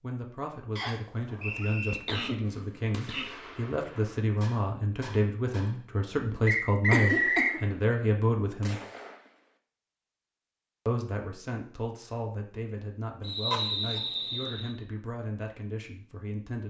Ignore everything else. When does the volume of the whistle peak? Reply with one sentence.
The loudest moment of the whistle is at 7 seconds.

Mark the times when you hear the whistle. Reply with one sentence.
You can hear the whistle from 0.8 to 2.0 s, from 6.5 to 7.6 s and from 13.2 to 14.8 s.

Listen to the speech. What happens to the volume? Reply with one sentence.
The loudness of the speech goes up, then down.